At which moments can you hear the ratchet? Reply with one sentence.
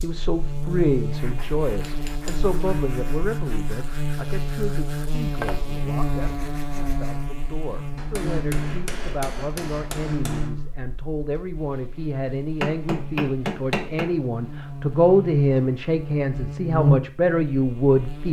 The ratchet can't be heard in this clip.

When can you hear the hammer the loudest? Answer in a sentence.
The volume of the hammer peaks at 14 seconds.